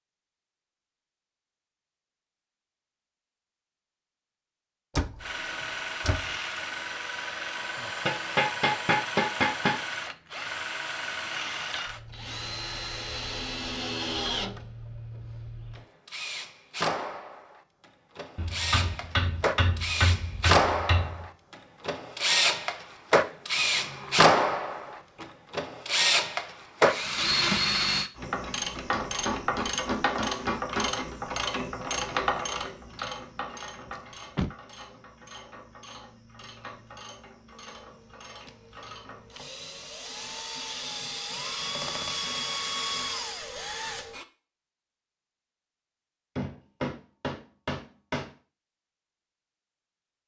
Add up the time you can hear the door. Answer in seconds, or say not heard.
4 s.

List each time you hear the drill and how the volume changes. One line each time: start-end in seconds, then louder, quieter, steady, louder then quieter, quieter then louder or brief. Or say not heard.
5.2-28.1 louder
37.8-44.2 louder.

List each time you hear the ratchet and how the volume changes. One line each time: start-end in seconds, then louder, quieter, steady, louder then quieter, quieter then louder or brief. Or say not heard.
28.1-39.4 quieter.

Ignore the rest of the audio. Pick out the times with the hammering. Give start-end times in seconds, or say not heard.
8.1-9.8, 18.4-21.2, 28.9-31.1, 46.4-48.3.